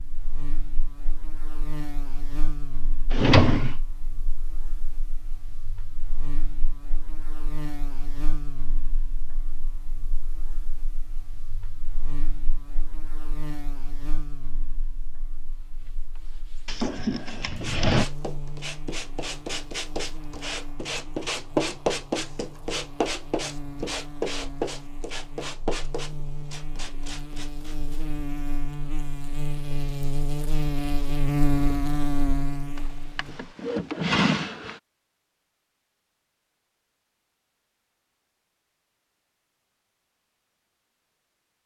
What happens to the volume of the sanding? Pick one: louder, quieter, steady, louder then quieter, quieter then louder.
louder then quieter.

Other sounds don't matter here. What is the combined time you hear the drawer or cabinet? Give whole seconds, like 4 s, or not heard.
4 s.